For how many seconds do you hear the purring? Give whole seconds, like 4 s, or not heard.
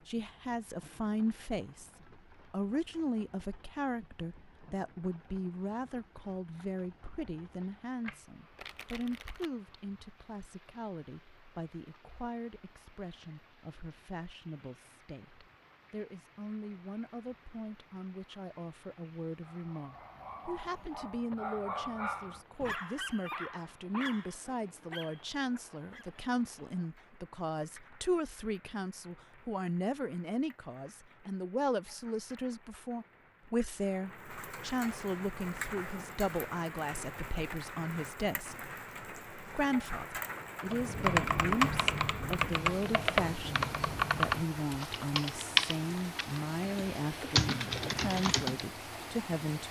not heard.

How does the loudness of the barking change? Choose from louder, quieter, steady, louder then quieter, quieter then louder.
louder then quieter.